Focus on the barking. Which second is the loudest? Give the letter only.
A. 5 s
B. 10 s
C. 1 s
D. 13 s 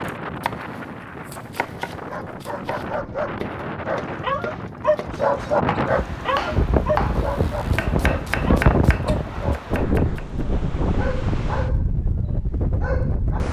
A.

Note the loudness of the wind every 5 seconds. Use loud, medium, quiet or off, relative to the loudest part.
medium, loud, loud.